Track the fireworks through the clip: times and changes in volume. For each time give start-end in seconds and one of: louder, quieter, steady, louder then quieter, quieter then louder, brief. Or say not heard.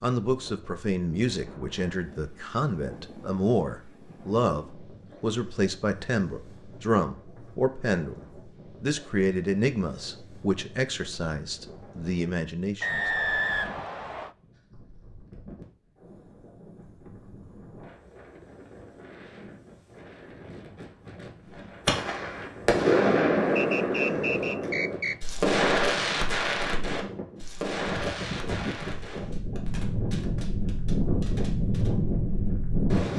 21.6-31.9 quieter.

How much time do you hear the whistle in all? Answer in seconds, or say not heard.
3 s.